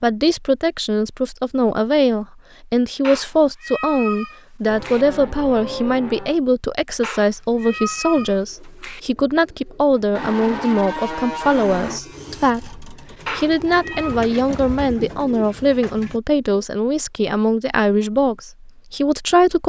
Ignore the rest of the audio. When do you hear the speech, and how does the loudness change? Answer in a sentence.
You can hear the speech from 0.0 to 19.6 s, at a steady volume.